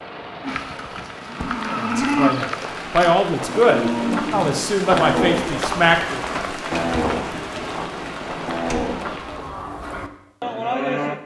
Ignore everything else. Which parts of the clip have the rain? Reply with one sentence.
You can hear the rain from 0.0 to 9.7 s.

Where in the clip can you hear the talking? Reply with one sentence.
The talking can be heard from 1.7 to 6.2 s.